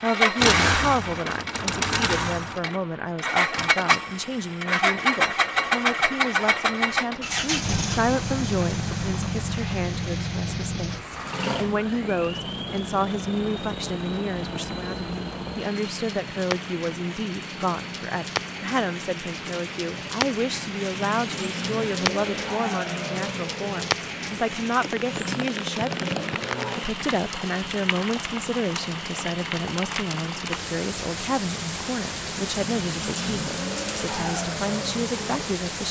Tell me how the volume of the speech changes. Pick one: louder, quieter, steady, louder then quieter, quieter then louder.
steady.